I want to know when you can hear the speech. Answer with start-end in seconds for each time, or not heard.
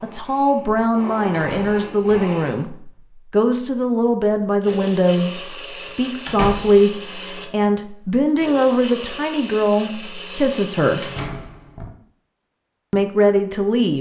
0.0-11.1, 12.9-13.9.